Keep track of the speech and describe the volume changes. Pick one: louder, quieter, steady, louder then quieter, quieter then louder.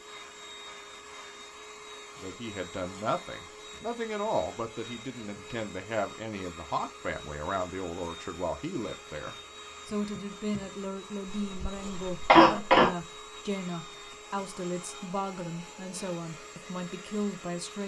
steady.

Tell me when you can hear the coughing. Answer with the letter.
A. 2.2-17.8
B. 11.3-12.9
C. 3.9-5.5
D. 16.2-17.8
B.